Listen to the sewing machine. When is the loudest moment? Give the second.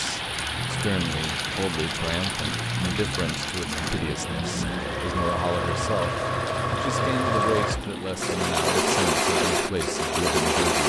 9 s.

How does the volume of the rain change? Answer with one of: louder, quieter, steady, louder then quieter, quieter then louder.
quieter.